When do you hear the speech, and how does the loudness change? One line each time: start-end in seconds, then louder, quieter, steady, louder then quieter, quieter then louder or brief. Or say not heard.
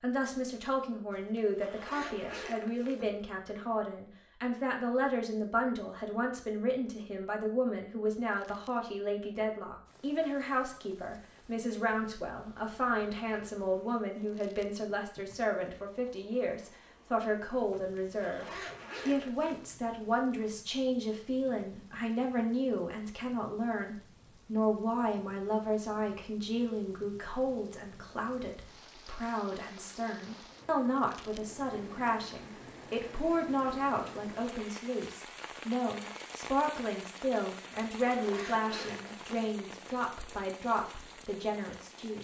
0.0-42.1 steady.